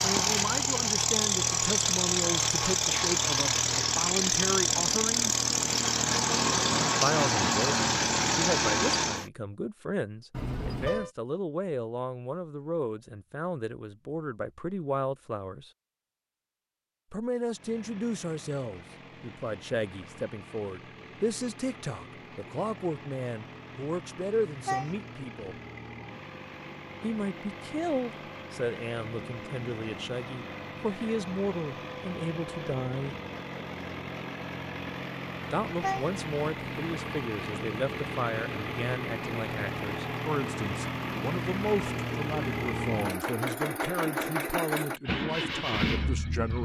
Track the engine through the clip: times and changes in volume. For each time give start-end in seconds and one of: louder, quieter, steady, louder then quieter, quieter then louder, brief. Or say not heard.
0.0-9.3 steady
17.4-46.5 louder.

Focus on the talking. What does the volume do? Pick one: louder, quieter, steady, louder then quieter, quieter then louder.
steady.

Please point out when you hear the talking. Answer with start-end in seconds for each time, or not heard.
0.0-5.3, 7.0-15.7, 17.1-25.6, 27.0-33.1, 35.5-46.5.